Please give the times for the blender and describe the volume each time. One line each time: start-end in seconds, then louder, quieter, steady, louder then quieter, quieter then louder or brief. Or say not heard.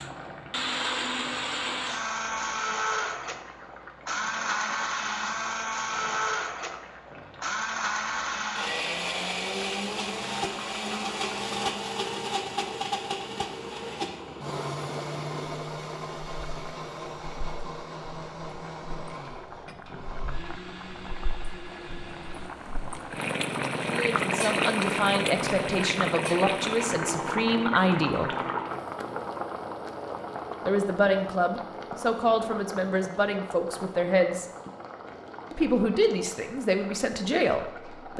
0.0-22.5 quieter.